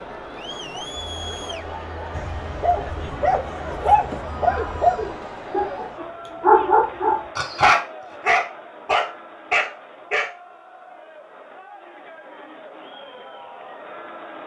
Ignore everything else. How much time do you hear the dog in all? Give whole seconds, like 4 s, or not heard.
8 s.